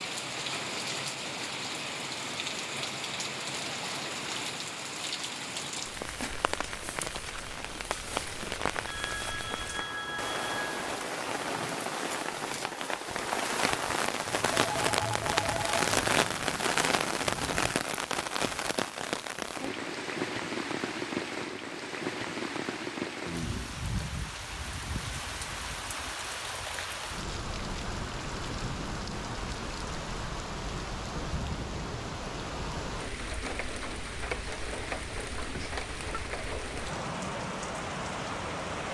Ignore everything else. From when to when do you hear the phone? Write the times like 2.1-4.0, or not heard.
8.4-10.9, 14.2-16.5, 35.5-36.2.